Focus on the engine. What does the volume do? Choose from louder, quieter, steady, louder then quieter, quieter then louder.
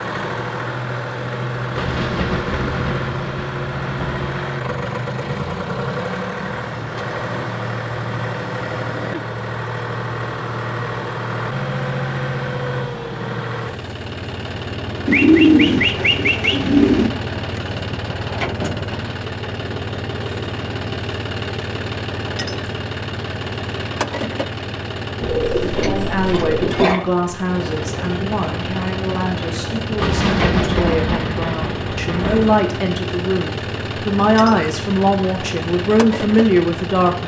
steady.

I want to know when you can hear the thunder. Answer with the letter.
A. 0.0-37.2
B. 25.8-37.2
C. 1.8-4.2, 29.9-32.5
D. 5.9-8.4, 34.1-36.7
C.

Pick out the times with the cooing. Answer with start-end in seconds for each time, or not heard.
15.1-17.1, 25.2-26.5.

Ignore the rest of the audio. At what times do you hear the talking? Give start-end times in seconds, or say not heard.
25.8-37.2.